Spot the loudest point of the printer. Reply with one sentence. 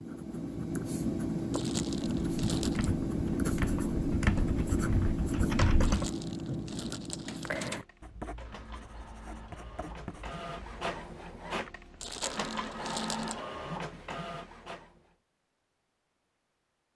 The volume of the printer peaks at 13 seconds.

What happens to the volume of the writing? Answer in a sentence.
The volume of the writing goes down.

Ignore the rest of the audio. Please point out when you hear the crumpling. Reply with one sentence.
You can hear the crumpling from 1.5 to 2.9 s, from 5.8 to 7.7 s and from 12.0 to 13.3 s.